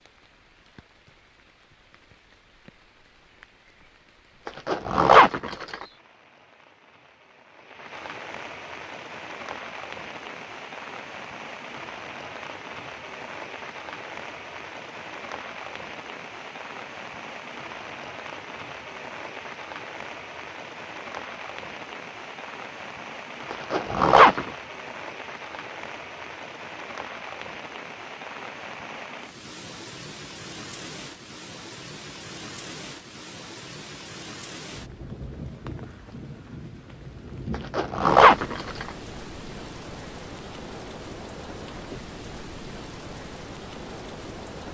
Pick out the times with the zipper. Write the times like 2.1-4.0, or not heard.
4.5-5.8, 23.5-24.5, 37.5-38.9.